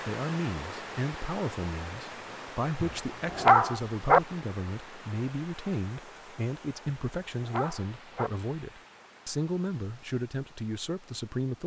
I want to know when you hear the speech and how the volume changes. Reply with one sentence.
The speech can be heard from 0.1 to 11.6 s, at a steady volume.